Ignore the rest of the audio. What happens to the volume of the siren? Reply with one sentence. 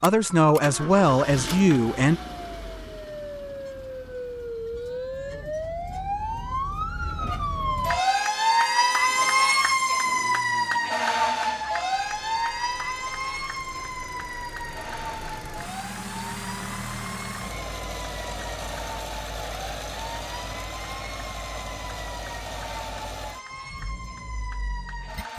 The loudness of the siren goes up, then down.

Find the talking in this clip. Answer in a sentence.
The talking can be heard from 0.0 to 2.2 s.